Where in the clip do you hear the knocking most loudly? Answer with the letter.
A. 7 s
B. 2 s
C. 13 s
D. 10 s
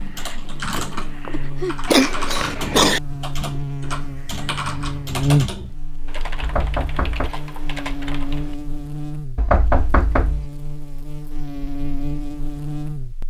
D.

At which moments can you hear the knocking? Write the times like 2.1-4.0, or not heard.
0.8-1.8, 6.4-7.3, 9.3-10.5.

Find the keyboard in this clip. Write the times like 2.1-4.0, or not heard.
0.0-8.6.